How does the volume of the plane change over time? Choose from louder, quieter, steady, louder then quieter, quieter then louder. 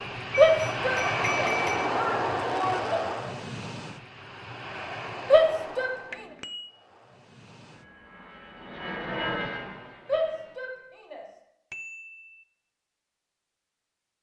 quieter then louder.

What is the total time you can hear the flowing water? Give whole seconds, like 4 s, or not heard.
not heard.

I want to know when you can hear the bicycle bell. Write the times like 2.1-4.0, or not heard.
0.3-1.9, 6.1-6.8, 11.7-12.2.